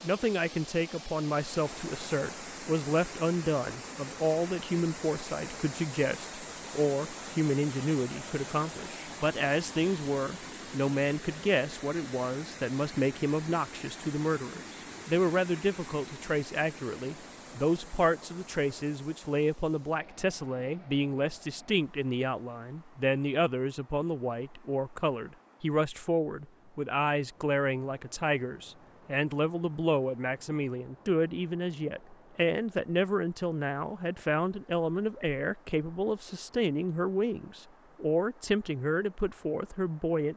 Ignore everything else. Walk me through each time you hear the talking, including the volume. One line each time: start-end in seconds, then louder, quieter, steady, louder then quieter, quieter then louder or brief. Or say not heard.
0.0-40.3 steady.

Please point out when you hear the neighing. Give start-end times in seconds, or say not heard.
not heard.